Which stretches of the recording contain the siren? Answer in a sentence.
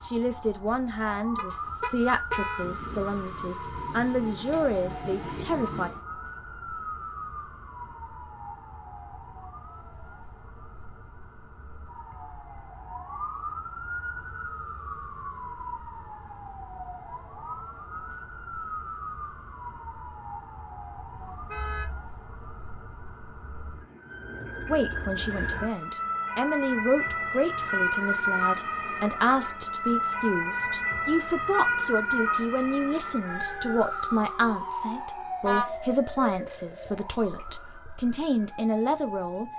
You can hear the siren from 0.0 to 39.5 s.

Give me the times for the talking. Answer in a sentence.
The talking can be heard from 0.0 to 5.9 s and from 24.6 to 39.5 s.